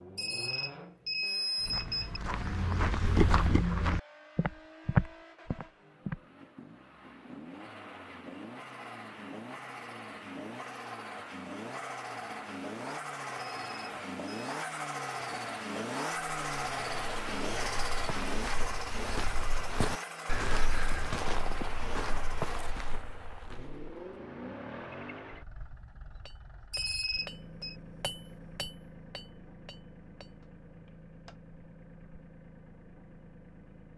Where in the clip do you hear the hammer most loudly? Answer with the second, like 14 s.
28 s.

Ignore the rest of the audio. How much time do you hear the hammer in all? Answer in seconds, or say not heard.
5 s.